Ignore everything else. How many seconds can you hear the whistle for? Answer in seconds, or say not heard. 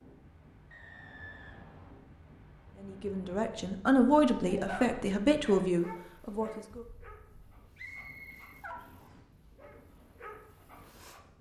3 s.